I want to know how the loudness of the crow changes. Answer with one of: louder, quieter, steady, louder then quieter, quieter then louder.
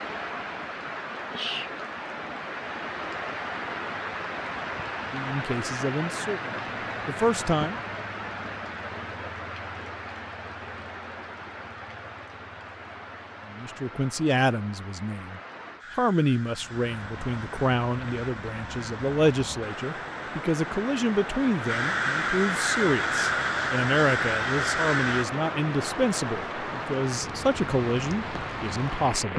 louder.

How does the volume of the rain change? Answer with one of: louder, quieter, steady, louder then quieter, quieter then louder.
quieter then louder.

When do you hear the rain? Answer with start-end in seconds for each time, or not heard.
0.0-29.3.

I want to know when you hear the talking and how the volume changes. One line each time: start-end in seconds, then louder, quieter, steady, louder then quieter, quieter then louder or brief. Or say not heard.
5.1-7.8 brief
13.5-29.3 steady.